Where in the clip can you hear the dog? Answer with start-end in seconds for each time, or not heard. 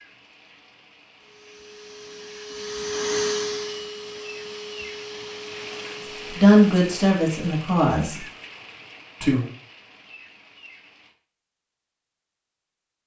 not heard.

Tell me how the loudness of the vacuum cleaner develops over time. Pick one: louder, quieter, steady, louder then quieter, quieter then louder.
louder then quieter.